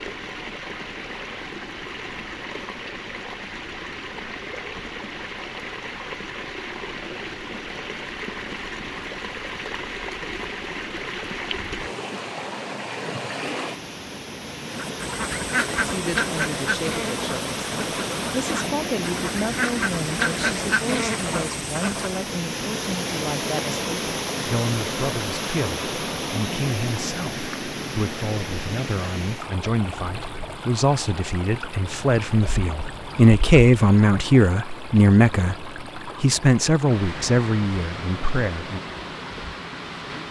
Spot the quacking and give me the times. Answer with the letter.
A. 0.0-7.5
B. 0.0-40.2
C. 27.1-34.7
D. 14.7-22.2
D.